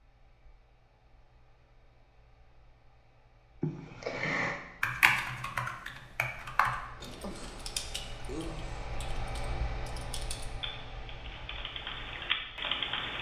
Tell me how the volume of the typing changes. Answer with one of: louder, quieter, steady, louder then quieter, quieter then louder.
quieter then louder.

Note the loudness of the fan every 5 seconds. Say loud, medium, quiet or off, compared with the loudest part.
quiet, loud, loud.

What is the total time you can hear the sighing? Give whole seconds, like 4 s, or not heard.
3 s.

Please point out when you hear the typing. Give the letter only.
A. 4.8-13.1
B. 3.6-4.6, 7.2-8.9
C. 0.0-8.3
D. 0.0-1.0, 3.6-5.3
A.